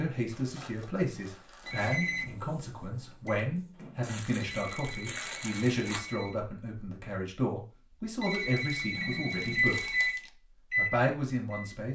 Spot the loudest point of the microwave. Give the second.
10 s.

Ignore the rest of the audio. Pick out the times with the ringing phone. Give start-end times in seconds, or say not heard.
1.6-2.3, 4.4-6.3, 8.2-10.2.